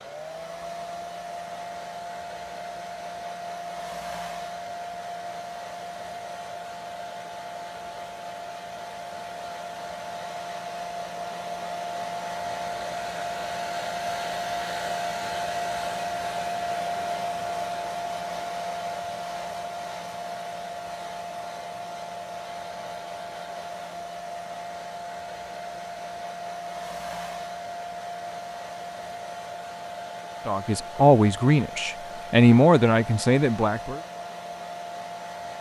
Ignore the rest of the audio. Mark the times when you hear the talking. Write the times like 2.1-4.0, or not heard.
30.4-34.0.